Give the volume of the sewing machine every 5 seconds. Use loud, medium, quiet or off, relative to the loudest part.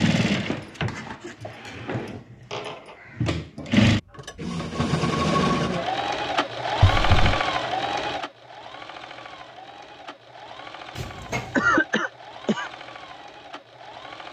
loud, loud, quiet.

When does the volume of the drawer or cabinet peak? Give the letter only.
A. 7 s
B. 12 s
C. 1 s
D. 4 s
A.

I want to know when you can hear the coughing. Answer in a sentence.
The coughing can be heard from 11.6 to 12.7 s.